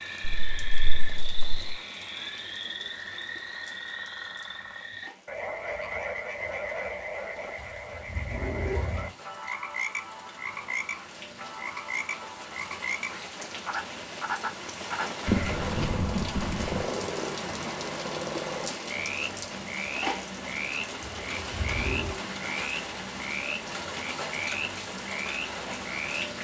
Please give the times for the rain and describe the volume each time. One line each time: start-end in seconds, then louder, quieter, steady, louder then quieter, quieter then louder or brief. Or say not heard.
0.0-26.3 louder.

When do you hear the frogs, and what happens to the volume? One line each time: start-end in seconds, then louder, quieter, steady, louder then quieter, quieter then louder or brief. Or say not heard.
0.0-26.3 steady.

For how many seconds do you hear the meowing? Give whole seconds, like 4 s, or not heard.
3 s.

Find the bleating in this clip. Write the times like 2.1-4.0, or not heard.
0.2-1.8, 15.2-16.9.